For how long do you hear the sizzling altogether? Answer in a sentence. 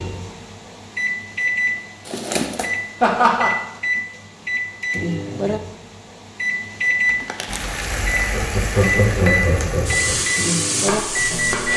The sizzling can be heard for 4 seconds in total.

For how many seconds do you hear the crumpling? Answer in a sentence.
The crumpling can be heard for 2 seconds in total.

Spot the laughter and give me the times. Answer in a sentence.
The laughter can be heard from 3.0 to 3.5 s and from 8.3 to 10.2 s.